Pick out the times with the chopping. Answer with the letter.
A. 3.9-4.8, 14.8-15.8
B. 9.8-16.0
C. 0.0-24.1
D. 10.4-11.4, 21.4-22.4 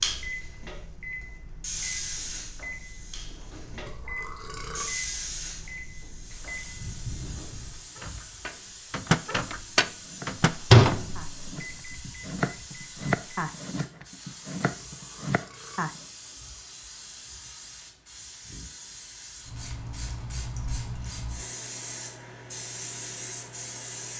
B.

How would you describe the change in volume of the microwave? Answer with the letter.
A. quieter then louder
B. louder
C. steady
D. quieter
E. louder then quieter
B.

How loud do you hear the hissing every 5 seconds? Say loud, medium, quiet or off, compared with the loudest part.
loud, medium, medium, medium, loud.